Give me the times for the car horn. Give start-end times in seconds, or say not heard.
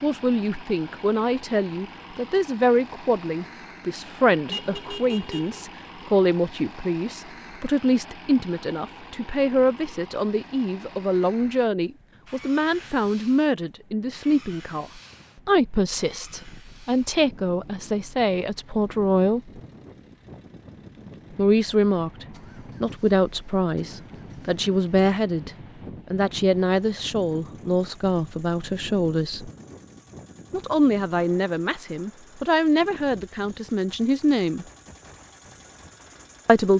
4.5-5.6.